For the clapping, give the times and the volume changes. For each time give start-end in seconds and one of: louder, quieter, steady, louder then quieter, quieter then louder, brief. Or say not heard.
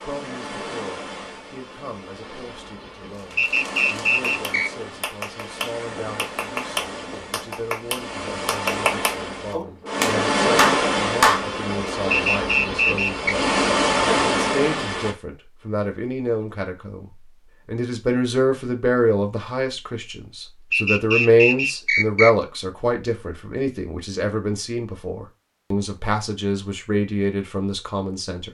3.1-11.4 louder.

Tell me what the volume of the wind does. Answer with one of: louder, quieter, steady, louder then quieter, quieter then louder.
louder.